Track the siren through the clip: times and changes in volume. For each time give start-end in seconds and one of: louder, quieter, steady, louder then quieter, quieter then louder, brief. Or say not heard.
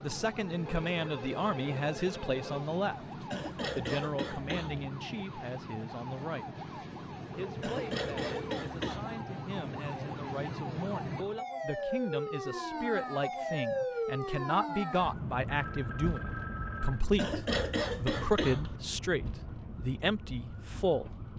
0.0-21.3 louder then quieter.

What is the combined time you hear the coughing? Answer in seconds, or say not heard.
5 s.